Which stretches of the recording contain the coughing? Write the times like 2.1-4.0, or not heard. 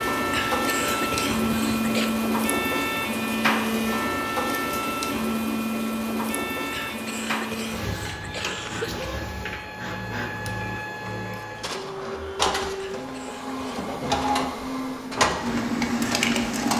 0.3-2.1, 6.7-9.1, 12.8-13.9.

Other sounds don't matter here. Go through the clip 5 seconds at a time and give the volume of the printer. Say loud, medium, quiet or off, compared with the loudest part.
loud, medium, medium, loud.